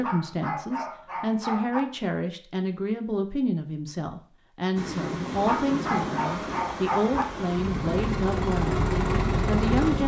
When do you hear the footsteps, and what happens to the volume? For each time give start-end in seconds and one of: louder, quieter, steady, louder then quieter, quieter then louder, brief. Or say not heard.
not heard.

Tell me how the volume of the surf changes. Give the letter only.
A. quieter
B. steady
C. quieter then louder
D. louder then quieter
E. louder
B.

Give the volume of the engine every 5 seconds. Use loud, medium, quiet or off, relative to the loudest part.
off, loud.